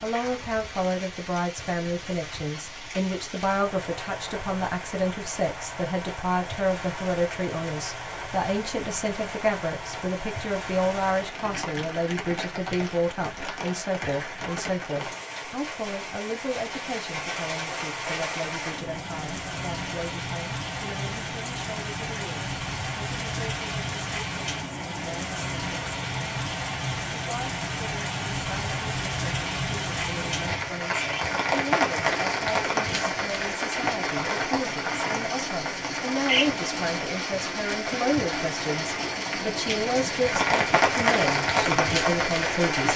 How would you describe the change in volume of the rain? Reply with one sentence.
The loudness of the rain goes up.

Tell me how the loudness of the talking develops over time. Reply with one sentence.
The volume of the talking goes down, then up.